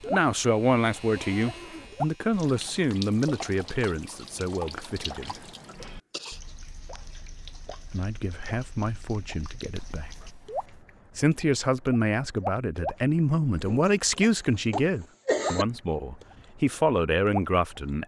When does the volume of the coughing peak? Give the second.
15 s.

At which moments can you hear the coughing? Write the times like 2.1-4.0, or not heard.
5.2-6.5, 13.7-15.7.